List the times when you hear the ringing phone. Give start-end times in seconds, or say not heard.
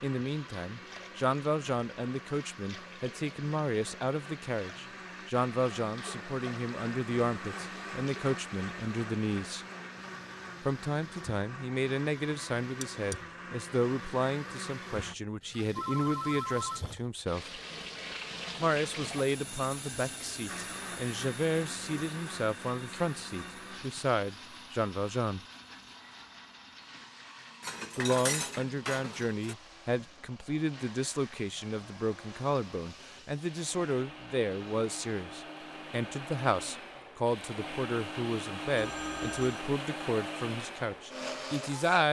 15.8-16.9, 38.8-39.6.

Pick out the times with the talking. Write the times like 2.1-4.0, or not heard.
0.0-9.7, 10.6-17.6, 18.6-25.4, 27.9-42.0.